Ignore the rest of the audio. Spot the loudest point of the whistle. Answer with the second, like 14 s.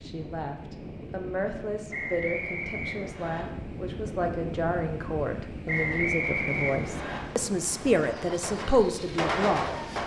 6 s.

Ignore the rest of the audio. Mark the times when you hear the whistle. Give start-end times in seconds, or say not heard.
1.9-3.5, 5.7-7.2.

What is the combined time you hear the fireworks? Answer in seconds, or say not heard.
4 s.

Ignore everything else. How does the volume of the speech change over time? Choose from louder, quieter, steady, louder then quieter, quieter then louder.
louder.